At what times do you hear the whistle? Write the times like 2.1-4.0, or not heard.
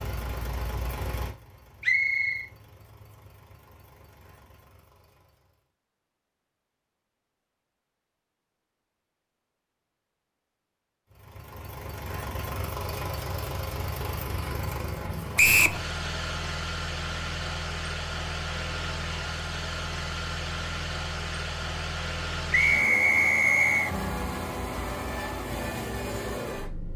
1.8-2.5, 15.3-15.8, 22.5-23.9.